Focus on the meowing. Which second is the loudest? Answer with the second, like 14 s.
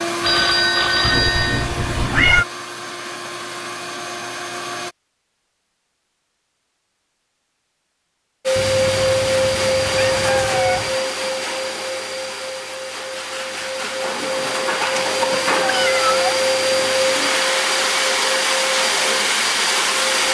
2 s.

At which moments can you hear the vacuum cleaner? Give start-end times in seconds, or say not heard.
0.0-5.0, 8.4-20.3.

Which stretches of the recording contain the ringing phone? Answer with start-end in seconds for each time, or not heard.
0.2-1.7.